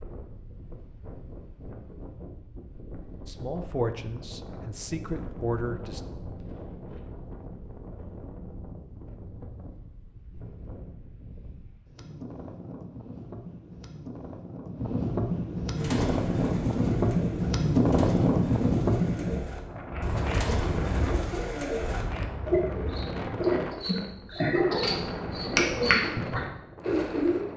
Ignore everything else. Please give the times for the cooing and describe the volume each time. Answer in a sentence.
You can hear the cooing from 15.7 to 27.4 s, getting louder.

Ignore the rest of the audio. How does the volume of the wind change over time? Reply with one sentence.
The loudness of the wind goes up, then down.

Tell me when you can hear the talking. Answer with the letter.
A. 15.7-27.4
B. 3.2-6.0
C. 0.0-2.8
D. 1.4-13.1
B.